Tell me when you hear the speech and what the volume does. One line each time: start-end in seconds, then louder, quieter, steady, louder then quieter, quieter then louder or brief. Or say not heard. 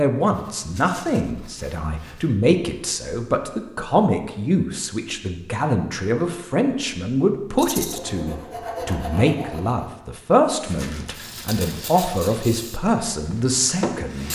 0.0-14.3 steady.